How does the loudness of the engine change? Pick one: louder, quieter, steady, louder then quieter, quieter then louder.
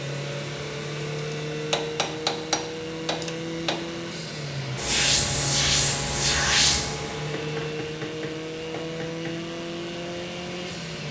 steady.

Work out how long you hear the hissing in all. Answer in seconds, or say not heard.
3 s.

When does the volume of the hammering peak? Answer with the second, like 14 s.
2 s.